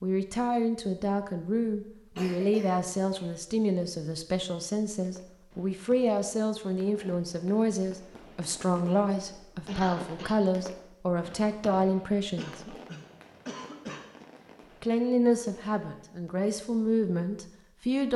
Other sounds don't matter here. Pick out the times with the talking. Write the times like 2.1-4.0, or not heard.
0.0-12.8, 14.8-18.1.